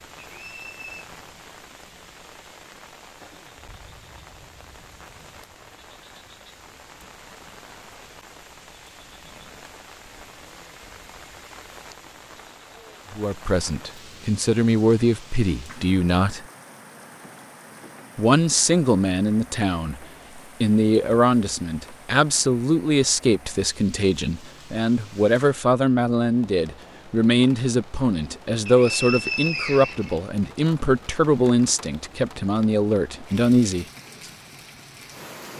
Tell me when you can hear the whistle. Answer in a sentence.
The whistle can be heard from 0.3 to 1.1 s and from 28.6 to 30.6 s.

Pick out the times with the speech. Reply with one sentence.
You can hear the speech from 13.1 to 16.4 s and from 18.1 to 33.9 s.